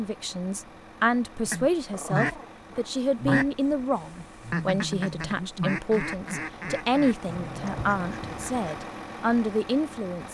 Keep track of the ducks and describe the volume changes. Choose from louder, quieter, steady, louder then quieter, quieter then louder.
quieter.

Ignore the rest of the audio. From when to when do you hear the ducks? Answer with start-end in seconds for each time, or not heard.
1.4-8.7.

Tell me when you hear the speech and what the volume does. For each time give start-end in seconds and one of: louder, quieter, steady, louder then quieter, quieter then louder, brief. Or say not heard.
0.0-10.2 steady.